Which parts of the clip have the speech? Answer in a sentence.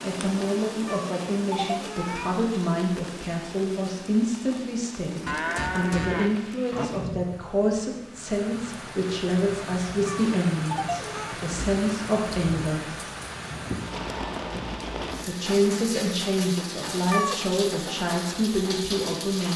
The speech can be heard from 0.0 to 12.9 s and from 15.2 to 19.5 s.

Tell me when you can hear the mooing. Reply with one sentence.
You can hear the mooing from 5.2 to 6.8 s.